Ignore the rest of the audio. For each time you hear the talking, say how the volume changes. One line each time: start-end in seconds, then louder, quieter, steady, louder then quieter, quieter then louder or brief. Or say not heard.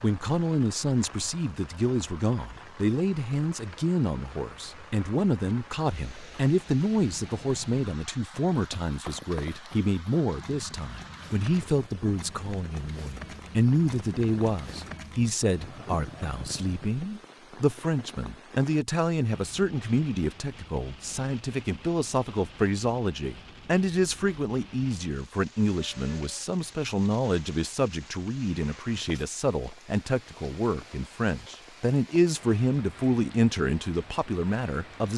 0.0-35.1 steady.